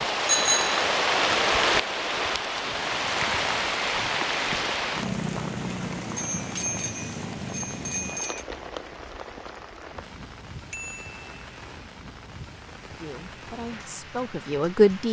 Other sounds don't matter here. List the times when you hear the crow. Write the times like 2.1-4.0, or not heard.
not heard.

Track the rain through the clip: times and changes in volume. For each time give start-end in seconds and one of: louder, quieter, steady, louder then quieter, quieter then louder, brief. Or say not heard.
0.0-15.0 quieter.